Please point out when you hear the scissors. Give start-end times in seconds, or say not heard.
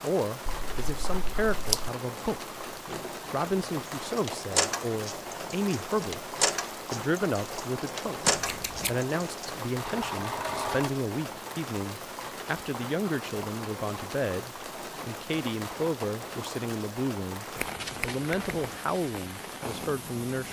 0.5-1.9, 8.2-8.9, 17.6-18.8.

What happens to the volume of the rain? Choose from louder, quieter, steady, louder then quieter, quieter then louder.
steady.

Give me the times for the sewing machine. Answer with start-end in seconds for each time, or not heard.
2.9-10.9.